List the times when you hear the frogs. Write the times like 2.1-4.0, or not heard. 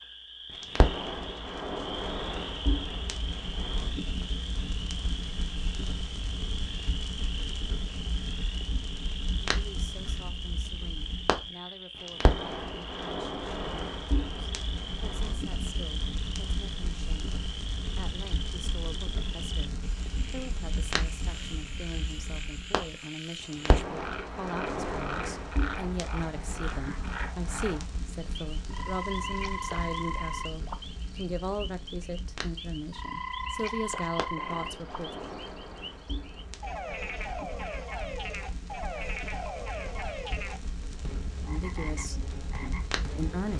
0.0-43.5.